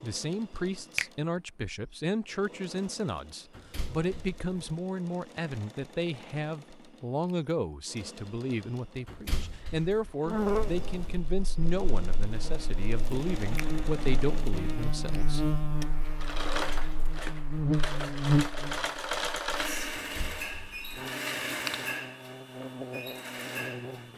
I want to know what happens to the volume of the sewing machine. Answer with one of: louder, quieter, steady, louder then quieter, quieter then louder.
louder.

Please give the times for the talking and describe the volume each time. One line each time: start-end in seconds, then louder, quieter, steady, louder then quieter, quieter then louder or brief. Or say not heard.
0.0-15.6 steady.